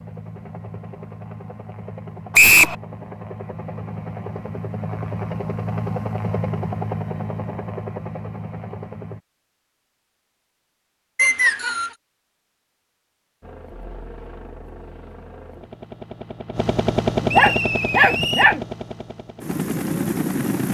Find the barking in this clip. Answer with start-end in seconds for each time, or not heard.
17.1-18.6.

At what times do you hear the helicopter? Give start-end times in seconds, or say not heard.
0.0-9.2, 13.4-20.6.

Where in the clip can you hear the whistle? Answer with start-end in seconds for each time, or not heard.
2.3-2.8, 11.2-11.9, 17.2-18.6.